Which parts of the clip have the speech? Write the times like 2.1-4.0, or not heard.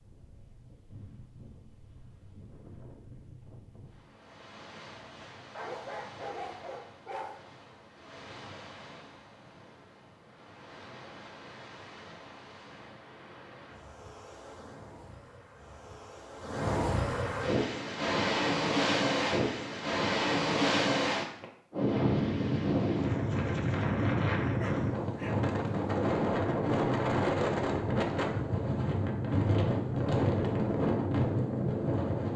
not heard.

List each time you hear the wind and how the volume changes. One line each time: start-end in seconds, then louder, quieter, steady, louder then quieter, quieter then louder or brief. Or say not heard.
0.0-32.3 louder.